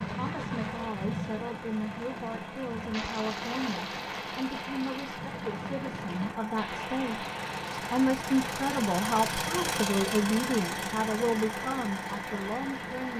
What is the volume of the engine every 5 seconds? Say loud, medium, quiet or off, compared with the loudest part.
medium, loud, loud.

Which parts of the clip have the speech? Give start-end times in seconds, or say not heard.
0.0-13.1.